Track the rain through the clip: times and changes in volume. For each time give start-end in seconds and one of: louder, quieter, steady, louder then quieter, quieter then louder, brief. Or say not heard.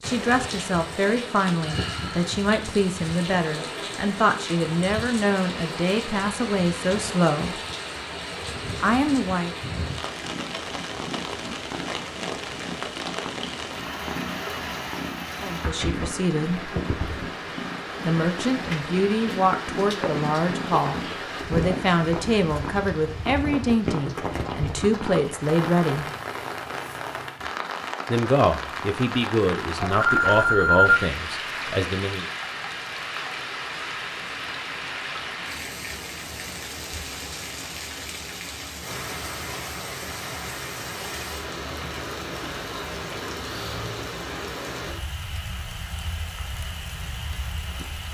0.0-48.0 steady.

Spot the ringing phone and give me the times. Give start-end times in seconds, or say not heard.
29.8-31.1.